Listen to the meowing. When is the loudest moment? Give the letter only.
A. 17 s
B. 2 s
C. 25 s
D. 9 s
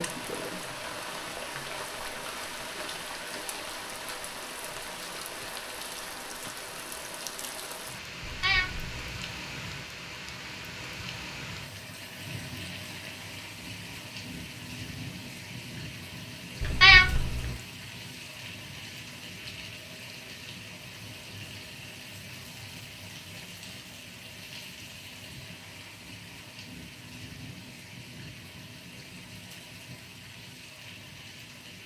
A.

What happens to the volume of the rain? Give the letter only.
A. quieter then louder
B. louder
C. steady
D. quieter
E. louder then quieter
D.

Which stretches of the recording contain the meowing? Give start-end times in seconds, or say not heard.
8.2-9.2, 16.6-17.5.